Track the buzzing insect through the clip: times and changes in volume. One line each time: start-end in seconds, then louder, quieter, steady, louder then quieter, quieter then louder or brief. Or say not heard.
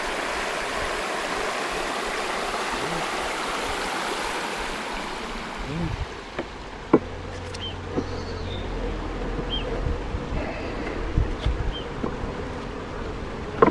0.0-13.6 louder.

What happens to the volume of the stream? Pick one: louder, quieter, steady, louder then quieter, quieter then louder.
quieter.